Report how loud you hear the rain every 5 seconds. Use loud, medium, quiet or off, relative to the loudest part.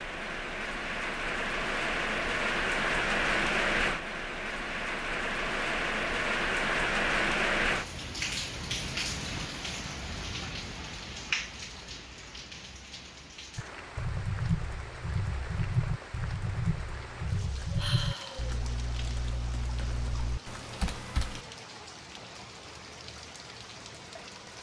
loud, loud, medium, quiet, quiet.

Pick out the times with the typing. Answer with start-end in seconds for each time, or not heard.
13.6-21.4.